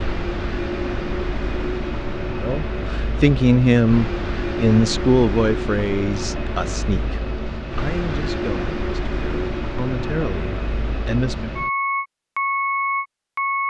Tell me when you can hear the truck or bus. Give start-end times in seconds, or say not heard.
0.0-13.6.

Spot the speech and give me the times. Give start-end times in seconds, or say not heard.
2.4-11.6.